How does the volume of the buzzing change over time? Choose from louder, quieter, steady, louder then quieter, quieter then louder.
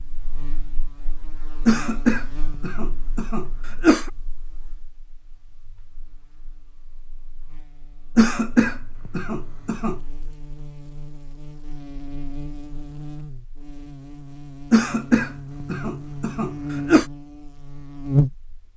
quieter then louder.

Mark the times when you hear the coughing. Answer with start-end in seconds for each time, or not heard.
1.6-4.1, 8.2-10.0, 14.7-17.1.